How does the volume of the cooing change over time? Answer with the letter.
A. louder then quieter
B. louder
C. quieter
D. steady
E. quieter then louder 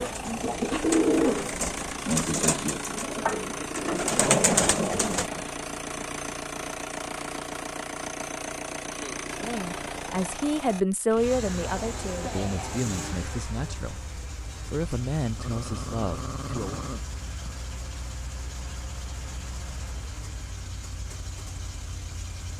E.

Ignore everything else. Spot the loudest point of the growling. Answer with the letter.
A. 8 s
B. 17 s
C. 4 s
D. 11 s
C.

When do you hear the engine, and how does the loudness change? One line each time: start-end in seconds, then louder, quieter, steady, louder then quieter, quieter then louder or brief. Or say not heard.
0.0-22.5 quieter.